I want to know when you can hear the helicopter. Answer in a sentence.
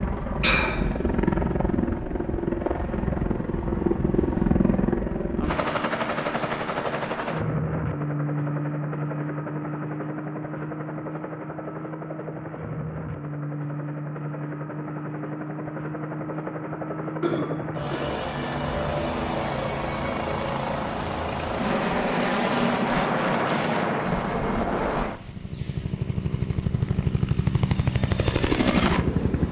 You can hear the helicopter from 0.0 to 29.4 s.